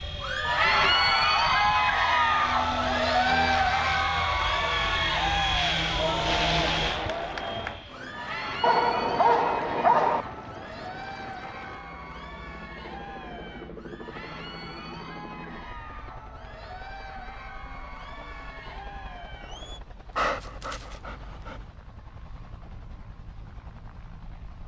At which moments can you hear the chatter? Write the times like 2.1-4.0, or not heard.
0.1-19.8.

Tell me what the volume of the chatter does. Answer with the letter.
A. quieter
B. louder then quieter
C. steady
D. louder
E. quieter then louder
A.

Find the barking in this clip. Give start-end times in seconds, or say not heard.
8.6-10.2, 20.1-21.7.